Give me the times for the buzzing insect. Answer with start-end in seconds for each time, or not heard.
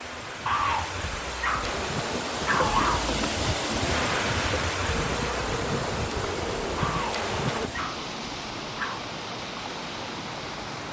1.6-7.7.